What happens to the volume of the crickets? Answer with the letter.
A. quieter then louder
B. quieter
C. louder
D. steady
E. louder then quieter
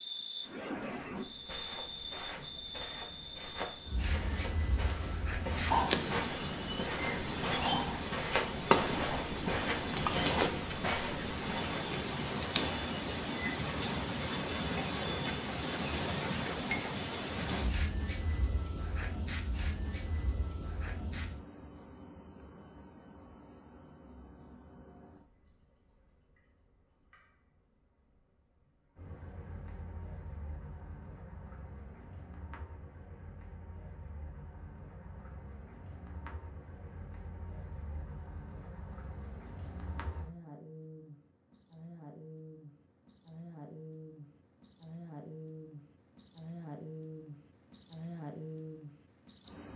A.